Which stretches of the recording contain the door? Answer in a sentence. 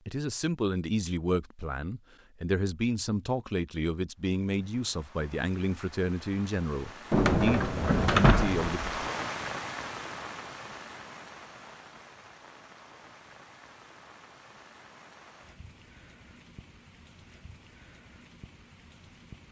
You can hear the door from 7.1 to 9.1 s.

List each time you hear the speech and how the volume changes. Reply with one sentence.
The speech can be heard from 0.1 to 8.8 s, at a steady volume.